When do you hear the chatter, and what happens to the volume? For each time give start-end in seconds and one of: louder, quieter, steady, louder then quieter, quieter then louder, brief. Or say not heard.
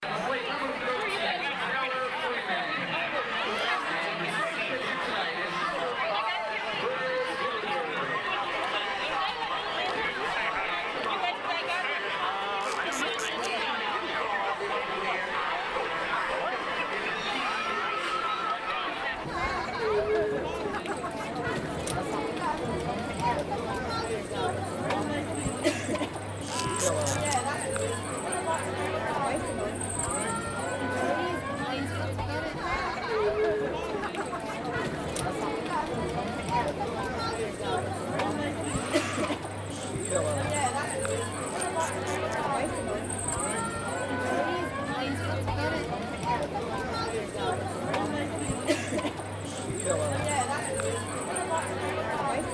0.0-52.4 steady.